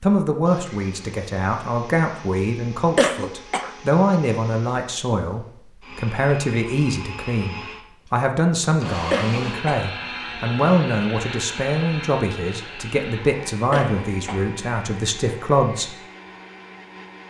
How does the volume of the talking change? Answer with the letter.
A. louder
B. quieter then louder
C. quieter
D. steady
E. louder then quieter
D.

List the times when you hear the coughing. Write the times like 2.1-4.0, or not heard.
3.0-3.7, 9.1-9.8, 13.7-14.4.